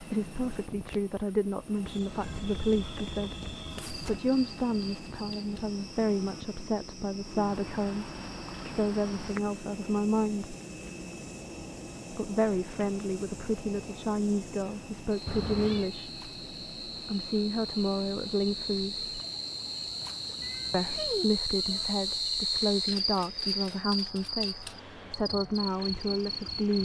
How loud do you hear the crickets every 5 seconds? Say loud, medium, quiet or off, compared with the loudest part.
quiet, quiet, quiet, medium, loud, medium.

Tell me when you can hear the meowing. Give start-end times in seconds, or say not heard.
2.2-4.2, 15.2-15.9, 20.4-21.2.